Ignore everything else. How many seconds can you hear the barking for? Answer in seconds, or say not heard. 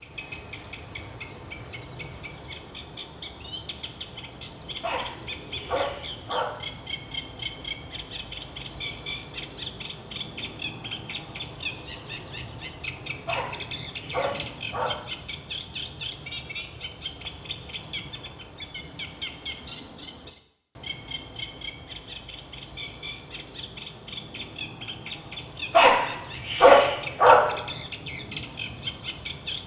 5 s.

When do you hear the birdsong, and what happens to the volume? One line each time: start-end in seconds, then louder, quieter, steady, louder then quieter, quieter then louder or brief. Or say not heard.
0.0-29.6 steady.